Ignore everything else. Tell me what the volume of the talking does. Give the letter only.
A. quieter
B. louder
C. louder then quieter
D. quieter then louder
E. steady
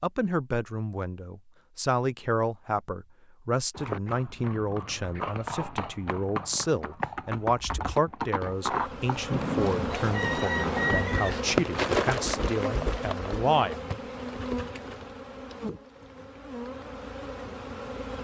E.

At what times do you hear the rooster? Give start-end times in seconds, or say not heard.
9.9-11.4.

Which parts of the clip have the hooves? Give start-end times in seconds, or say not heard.
3.7-11.1.